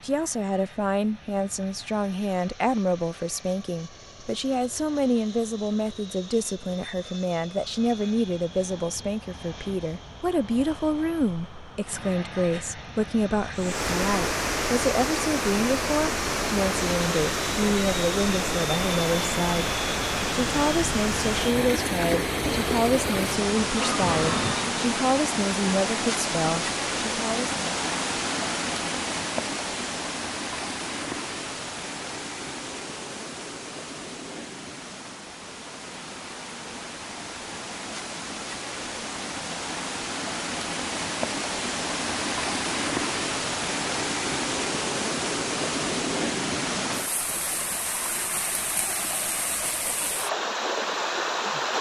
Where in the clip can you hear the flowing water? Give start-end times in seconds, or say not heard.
13.6-51.7.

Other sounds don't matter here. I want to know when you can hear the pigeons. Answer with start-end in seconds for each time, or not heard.
not heard.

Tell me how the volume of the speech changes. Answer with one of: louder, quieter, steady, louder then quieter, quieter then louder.
steady.